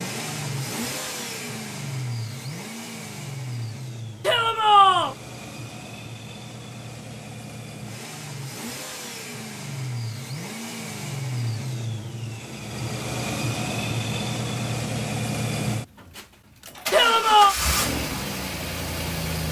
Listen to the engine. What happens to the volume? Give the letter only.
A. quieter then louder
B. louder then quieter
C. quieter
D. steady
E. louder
A.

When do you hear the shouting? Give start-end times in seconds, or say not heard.
4.2-5.2, 16.9-17.6.